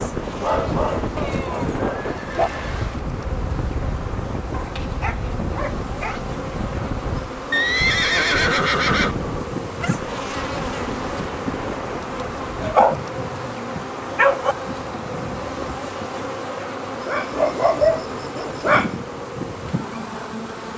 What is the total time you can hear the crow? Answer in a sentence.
The crow can't be heard in this clip.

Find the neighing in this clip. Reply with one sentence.
You can hear the neighing from 1.1 to 3.0 s, from 7.5 to 9.2 s and from 15.1 to 15.8 s.